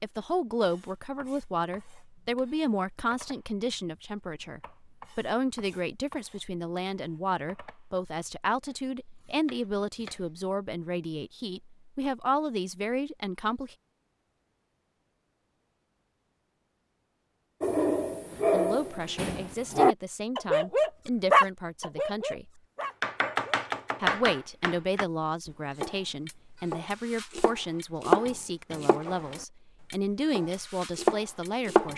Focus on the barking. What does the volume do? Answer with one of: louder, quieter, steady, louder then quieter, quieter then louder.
louder then quieter.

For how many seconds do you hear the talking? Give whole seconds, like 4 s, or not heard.
26 s.